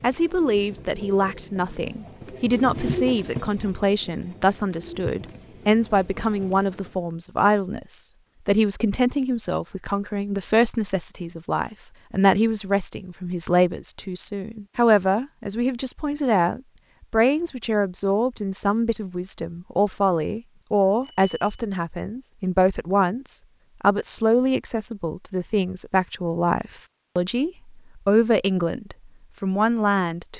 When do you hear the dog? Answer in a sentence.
The dog can't be heard in this clip.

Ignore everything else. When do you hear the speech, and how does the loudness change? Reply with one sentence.
You can hear the speech from 0.0 to 30.3 s, at a steady volume.